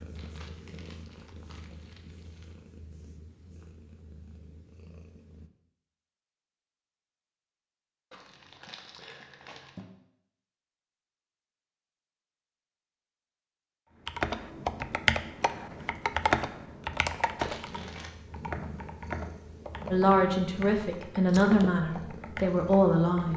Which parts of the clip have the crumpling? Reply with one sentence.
You can hear the crumpling from 0.1 to 2.5 s, from 8.1 to 9.9 s and from 17.4 to 18.1 s.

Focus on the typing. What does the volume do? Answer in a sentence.
The loudness of the typing goes down.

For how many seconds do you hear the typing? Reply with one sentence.
The typing can be heard for 9 seconds in total.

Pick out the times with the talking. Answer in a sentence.
You can hear the talking from 19.9 to 23.3 s.